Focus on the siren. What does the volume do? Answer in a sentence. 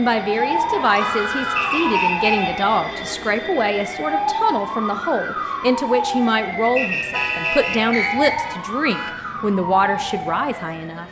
The loudness of the siren goes down.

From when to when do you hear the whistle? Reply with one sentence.
The whistle can be heard from 1.6 to 2.4 s and from 6.8 to 8.3 s.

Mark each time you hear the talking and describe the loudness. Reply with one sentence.
You can hear the talking from 0.0 to 11.0 s, at a steady volume.